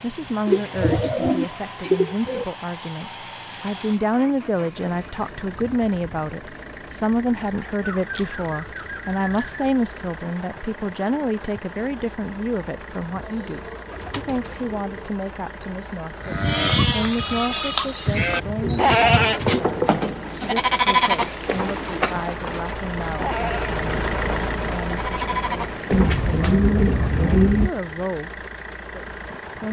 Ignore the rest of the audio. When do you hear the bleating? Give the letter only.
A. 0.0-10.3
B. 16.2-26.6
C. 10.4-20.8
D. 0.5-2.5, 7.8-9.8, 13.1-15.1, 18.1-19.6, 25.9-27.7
B.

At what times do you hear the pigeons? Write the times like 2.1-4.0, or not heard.
0.5-2.5, 7.8-9.8, 13.1-15.1, 18.1-19.6, 25.9-27.7.